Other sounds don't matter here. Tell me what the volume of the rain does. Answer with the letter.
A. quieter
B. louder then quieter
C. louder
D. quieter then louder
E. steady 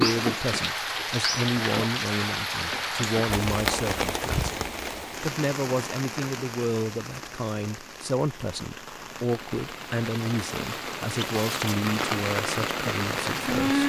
D.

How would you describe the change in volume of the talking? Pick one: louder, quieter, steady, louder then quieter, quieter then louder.
steady.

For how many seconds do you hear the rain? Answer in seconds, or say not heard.
14 s.